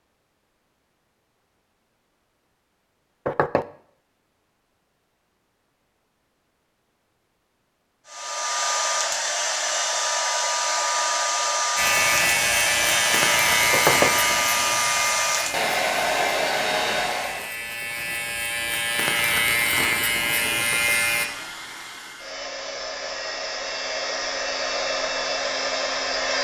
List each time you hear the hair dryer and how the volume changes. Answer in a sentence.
The hair dryer can be heard from 8.1 to 17.5 s, at a steady volume; and from 20.2 to 26.3 s, getting louder.